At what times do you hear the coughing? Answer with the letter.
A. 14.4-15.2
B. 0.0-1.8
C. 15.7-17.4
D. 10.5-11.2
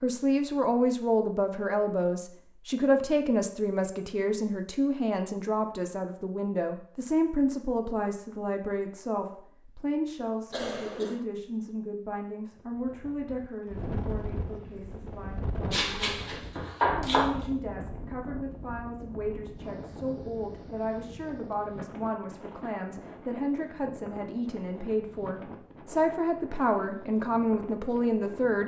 D.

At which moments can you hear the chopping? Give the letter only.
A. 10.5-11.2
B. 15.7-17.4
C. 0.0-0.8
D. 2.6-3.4
B.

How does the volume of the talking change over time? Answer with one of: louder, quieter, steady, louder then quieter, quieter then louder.
quieter then louder.